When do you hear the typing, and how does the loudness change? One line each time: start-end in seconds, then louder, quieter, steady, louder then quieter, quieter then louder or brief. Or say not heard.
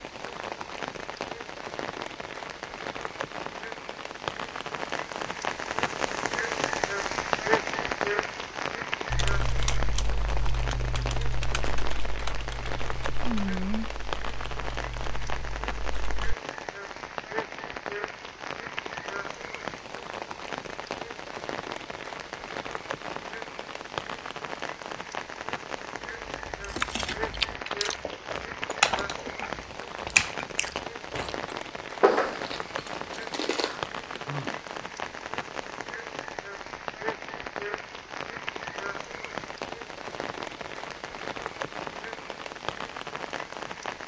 9.1-16.4 quieter.